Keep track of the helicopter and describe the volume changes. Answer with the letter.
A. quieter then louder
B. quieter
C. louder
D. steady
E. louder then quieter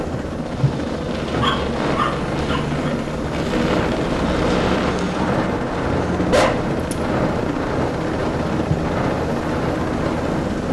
D.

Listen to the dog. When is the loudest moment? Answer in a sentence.
The loudest moment of the dog is at 6 seconds.